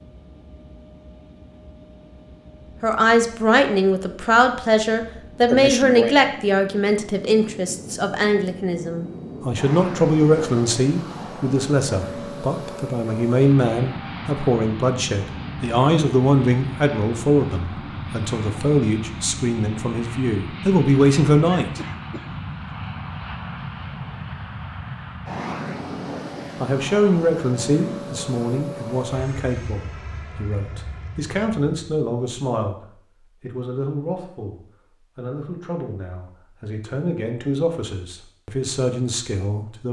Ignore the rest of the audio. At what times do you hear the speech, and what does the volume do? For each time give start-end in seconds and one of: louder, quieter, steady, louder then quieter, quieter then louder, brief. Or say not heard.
2.8-21.8 steady
26.6-39.8 quieter then louder.